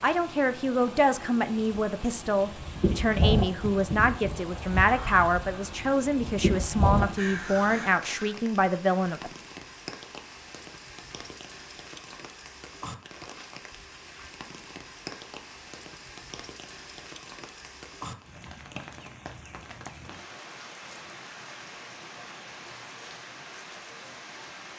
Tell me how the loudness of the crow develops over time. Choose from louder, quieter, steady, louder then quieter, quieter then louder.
quieter then louder.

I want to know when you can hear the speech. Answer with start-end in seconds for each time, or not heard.
0.0-9.3.